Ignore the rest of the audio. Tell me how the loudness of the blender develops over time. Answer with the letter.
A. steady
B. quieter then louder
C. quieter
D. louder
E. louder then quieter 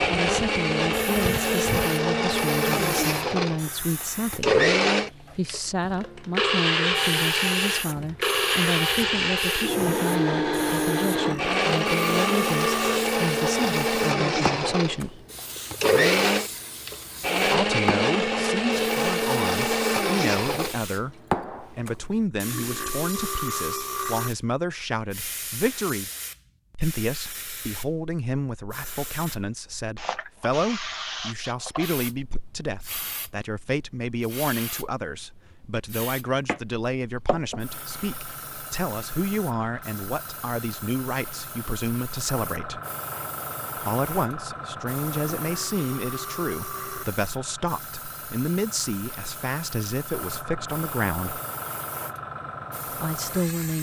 A.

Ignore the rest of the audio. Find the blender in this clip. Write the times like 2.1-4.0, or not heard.
0.0-20.8.